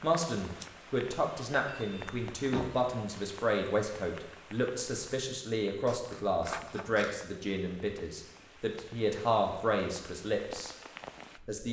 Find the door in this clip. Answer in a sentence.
You can hear the door from 1.6 to 3.0 s.